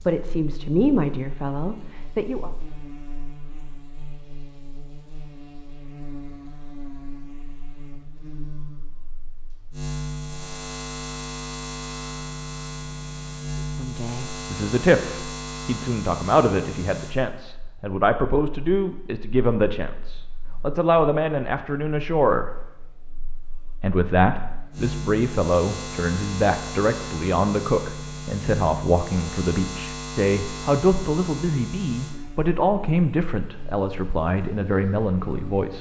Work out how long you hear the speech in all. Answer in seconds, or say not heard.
23 s.